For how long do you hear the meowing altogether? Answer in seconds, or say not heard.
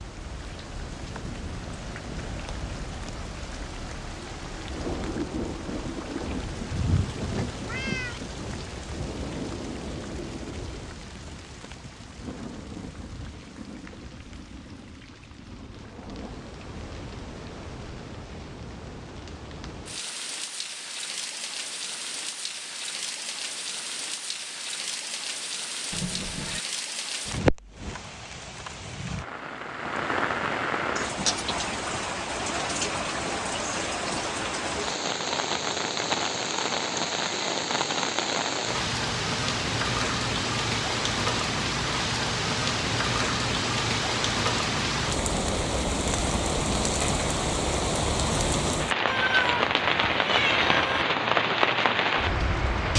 4 s.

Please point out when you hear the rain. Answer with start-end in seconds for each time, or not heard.
0.0-52.9.